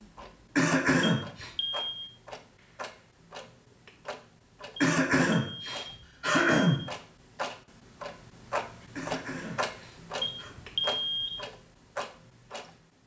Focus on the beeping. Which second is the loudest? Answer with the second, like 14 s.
11 s.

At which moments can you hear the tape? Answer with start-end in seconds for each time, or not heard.
not heard.